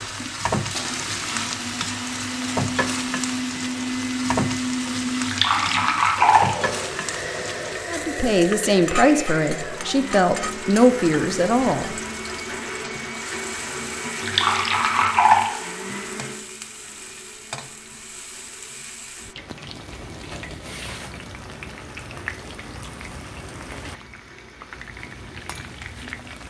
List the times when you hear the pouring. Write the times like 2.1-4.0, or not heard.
5.2-6.5, 14.2-15.5.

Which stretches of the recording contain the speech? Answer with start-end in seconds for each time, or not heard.
7.9-11.9.